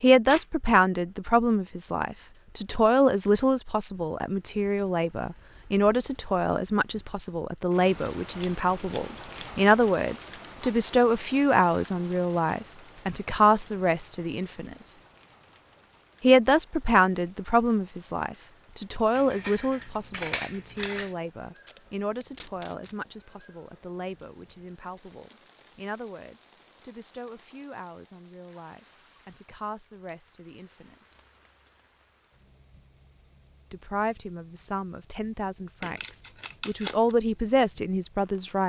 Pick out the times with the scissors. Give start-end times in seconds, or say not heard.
8.3-9.7, 19.1-21.1, 35.8-37.1.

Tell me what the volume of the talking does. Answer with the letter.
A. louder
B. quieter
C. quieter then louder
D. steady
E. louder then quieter
C.